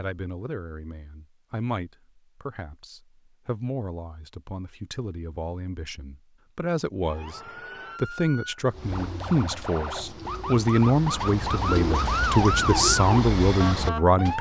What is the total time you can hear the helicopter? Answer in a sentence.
You can't hear the helicopter here.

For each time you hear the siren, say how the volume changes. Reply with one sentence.
The siren can be heard from 7.0 to 14.3 s, getting louder.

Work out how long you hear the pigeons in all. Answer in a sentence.
The pigeons can be heard for 6 seconds in total.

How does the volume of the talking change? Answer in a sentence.
The loudness of the talking goes up.